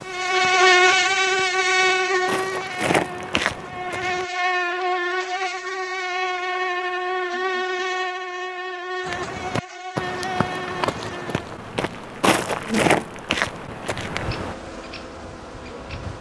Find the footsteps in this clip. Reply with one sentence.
The footsteps can be heard from 0.0 to 4.2 s and from 9.1 to 14.6 s.